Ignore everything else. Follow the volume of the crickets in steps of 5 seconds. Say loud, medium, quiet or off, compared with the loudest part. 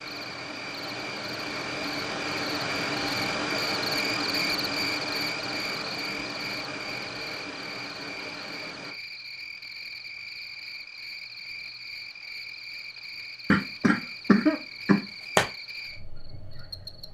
loud, loud, medium, medium.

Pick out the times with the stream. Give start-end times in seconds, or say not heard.
0.0-8.9.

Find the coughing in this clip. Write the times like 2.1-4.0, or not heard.
13.5-15.5.